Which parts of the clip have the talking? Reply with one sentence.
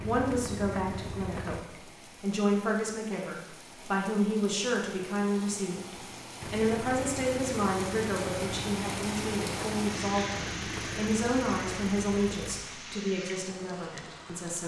You can hear the talking from 0.0 to 14.6 s.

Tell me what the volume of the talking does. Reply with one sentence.
The volume of the talking stays about the same.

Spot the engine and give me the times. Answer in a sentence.
You can hear the engine from 0.0 to 1.6 s and from 6.4 to 12.6 s.